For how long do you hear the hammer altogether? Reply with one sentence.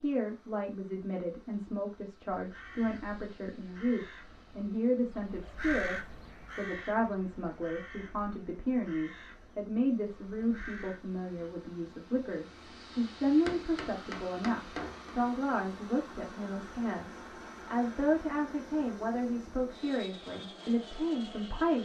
You can hear the hammer for 2 seconds altogether.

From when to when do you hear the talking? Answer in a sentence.
The talking can be heard from 0.0 to 21.7 s.